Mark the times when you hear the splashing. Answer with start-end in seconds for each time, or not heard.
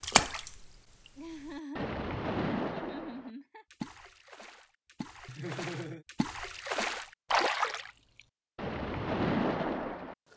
0.0-7.9, 8.6-10.2.